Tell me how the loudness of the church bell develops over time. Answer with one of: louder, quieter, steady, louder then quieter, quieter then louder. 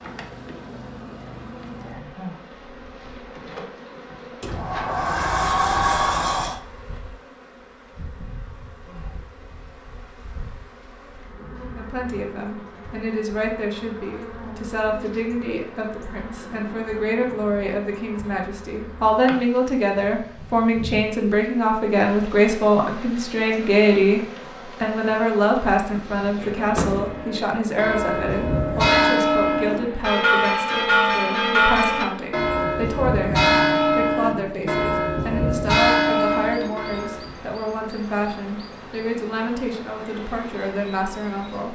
steady.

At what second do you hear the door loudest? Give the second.
6 s.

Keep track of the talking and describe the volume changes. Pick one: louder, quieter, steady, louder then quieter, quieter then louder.
louder then quieter.